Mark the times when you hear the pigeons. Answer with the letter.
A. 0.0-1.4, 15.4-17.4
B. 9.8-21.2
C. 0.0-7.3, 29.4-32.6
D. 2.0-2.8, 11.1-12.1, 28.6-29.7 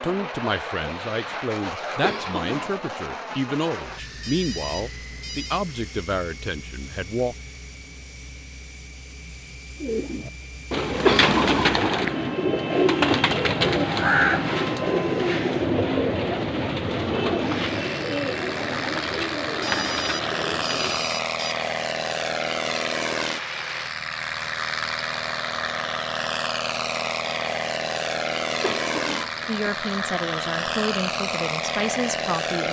B.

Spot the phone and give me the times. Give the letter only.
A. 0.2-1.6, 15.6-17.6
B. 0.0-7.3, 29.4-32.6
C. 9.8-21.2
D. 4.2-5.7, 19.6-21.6
D.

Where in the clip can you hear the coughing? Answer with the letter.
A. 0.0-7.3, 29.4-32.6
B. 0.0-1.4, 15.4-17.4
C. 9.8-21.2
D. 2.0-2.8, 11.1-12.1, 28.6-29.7
D.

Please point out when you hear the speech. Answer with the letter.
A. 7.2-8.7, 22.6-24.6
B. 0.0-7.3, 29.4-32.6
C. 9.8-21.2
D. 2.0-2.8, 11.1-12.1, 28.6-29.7
B.